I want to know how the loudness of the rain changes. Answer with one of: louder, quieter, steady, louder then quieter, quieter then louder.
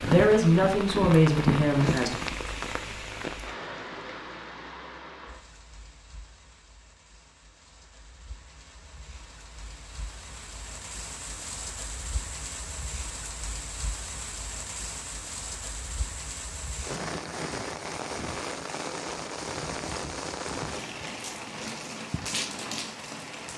quieter then louder.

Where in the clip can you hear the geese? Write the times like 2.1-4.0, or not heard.
not heard.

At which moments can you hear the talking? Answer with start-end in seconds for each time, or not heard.
0.0-2.1.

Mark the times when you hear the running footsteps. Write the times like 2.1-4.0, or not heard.
0.0-2.4.